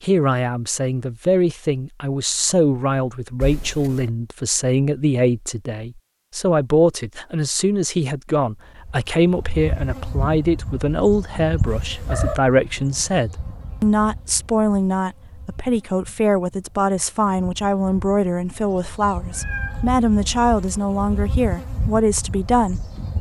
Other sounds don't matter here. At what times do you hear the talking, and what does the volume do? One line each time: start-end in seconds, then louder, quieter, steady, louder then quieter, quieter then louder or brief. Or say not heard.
0.0-22.9 steady.